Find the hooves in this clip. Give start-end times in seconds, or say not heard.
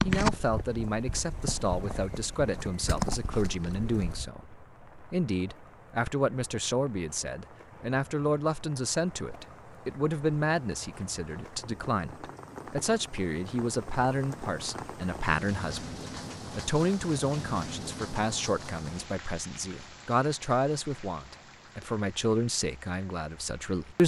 0.0-4.3.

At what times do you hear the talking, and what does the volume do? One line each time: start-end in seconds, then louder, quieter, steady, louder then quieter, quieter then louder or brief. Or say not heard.
0.0-24.0 steady.